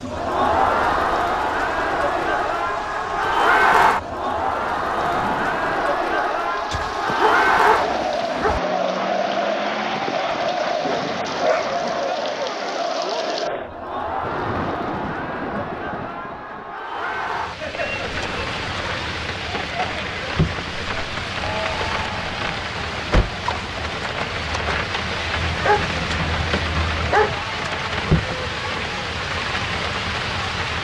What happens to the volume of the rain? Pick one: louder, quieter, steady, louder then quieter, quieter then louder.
louder.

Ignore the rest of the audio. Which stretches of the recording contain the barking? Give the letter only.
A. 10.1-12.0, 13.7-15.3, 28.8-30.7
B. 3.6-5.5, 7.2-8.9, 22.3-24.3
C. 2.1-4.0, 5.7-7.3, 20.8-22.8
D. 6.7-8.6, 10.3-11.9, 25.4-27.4
D.